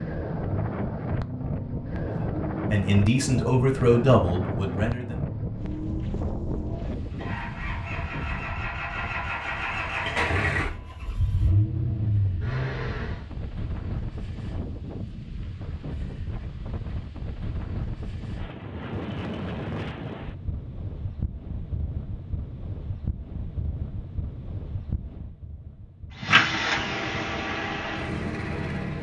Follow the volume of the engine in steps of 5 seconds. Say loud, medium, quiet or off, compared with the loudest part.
medium, medium, loud, off, off, loud.